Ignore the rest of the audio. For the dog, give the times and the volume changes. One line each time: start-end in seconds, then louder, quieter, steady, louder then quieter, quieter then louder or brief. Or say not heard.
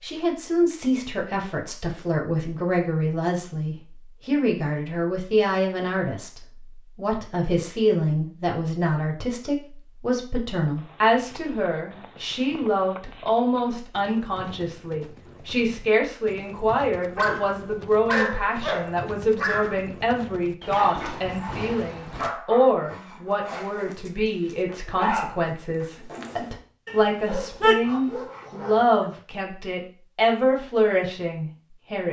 16.9-29.1 quieter then louder.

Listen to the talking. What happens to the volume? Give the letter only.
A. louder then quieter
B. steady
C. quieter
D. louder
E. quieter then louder
B.